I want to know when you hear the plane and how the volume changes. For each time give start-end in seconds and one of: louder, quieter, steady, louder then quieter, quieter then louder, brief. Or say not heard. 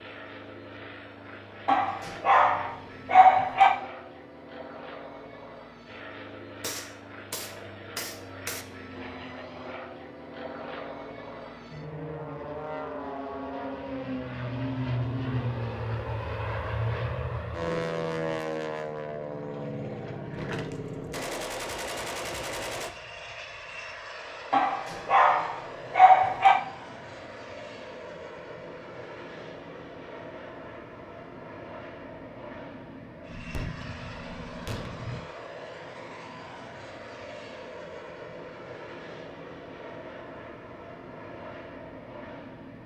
0.0-42.8 louder then quieter.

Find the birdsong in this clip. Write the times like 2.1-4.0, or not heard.
not heard.